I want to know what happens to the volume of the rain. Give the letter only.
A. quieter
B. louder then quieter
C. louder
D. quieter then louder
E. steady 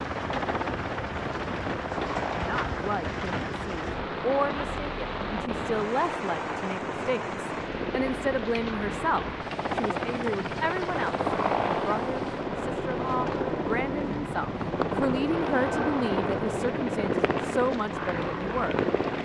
A.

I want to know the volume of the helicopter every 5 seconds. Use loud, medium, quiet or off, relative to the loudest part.
medium, medium, loud, loud.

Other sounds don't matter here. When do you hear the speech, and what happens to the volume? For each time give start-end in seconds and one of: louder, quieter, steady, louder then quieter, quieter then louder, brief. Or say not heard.
2.3-18.8 steady.